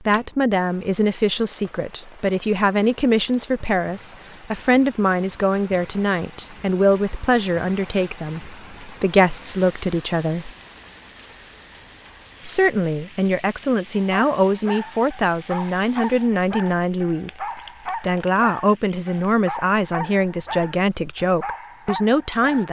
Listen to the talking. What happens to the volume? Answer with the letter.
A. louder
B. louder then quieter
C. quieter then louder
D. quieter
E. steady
E.